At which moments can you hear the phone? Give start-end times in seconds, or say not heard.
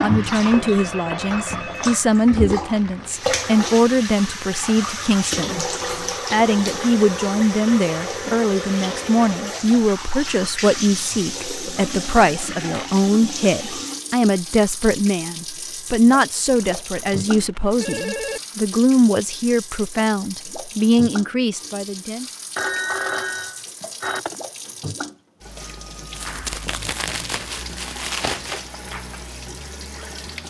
0.3-2.0, 16.6-18.4, 22.6-24.4.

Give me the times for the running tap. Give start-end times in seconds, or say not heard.
0.0-30.4.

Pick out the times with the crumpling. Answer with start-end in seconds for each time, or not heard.
2.6-3.4, 11.8-13.1, 26.1-28.6.